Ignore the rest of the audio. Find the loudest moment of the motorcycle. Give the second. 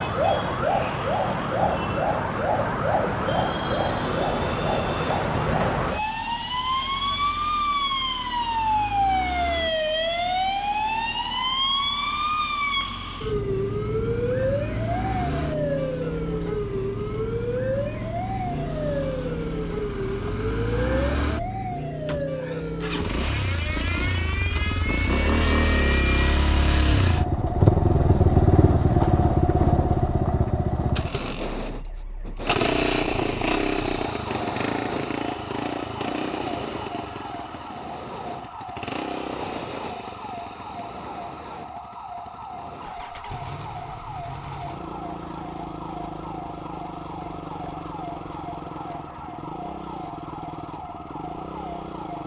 28 s.